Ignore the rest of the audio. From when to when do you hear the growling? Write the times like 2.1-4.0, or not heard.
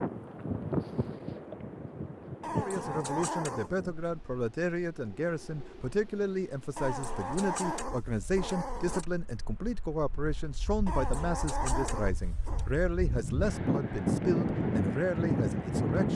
2.4-3.8, 6.8-9.1, 10.8-12.7.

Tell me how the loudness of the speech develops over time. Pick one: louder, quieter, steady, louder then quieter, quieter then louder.
steady.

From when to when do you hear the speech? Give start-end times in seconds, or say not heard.
2.5-16.1.